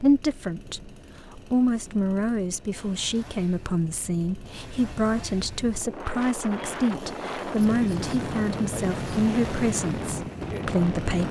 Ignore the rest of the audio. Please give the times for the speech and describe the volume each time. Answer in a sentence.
The speech can be heard from 0.0 to 11.2 s, at a steady volume.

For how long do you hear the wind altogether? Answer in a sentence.
The wind can be heard for 11 seconds in total.